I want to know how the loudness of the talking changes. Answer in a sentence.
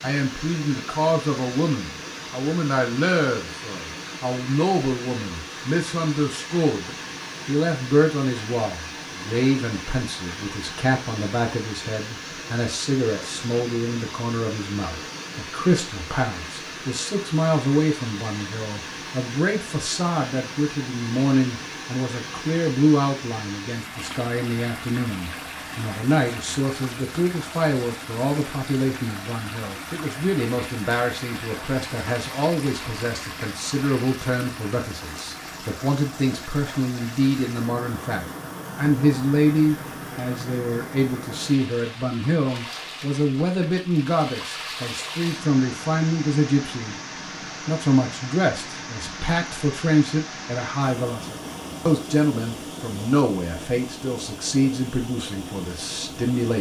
The loudness of the talking stays about the same.